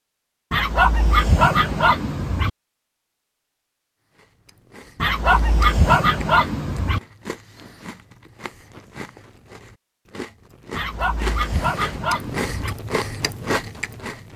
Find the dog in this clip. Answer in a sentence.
You can hear the dog from 0.5 to 2.5 s, from 5.0 to 7.0 s and from 10.7 to 12.8 s.